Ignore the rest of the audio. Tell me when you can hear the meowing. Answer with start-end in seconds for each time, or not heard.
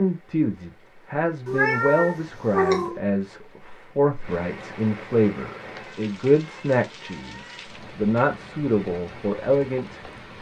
1.4-3.0, 5.6-7.6.